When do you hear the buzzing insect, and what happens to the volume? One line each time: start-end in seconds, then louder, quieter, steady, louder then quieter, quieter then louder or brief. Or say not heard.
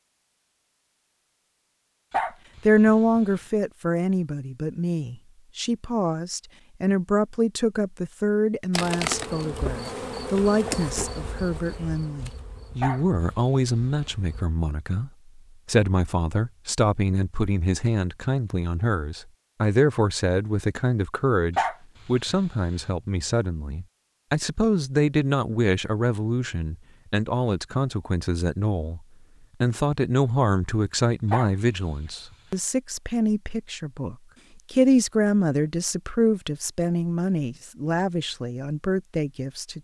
8.7-14.4 quieter.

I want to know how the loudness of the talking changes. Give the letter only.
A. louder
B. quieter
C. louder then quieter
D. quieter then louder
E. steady
E.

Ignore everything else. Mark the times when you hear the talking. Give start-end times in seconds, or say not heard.
2.6-29.0, 29.6-39.8.